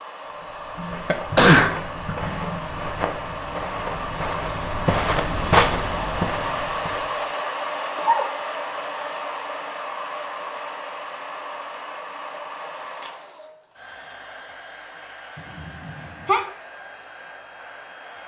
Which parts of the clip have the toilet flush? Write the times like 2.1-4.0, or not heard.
not heard.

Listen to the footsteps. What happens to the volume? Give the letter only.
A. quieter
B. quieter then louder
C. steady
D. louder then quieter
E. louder
E.